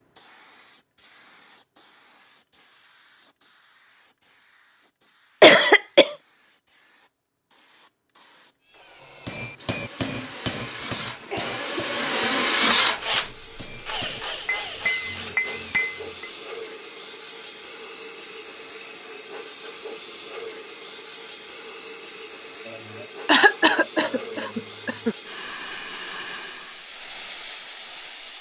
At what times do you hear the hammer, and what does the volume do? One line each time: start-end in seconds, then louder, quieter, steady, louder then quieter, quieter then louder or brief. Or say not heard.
9.2-16.3 quieter then louder.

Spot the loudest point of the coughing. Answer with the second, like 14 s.
6 s.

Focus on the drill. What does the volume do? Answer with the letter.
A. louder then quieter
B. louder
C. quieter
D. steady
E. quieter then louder
A.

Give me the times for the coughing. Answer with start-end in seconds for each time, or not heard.
5.4-6.2, 10.0-11.8, 23.2-25.1.